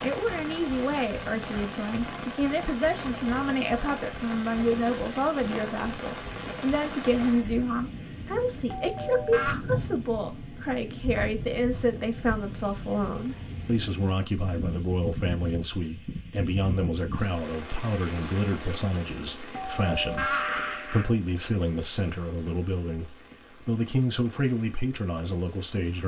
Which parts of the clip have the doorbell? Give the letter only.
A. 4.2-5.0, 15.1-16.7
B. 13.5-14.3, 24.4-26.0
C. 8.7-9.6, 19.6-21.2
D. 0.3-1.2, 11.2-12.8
C.